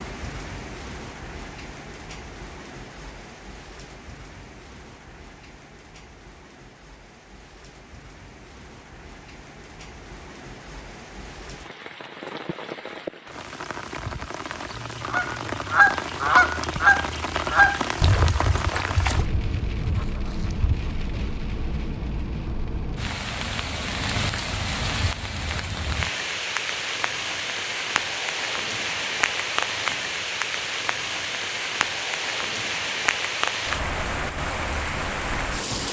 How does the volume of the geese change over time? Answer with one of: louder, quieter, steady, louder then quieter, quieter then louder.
quieter.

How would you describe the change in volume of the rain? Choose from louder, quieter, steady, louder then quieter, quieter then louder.
louder.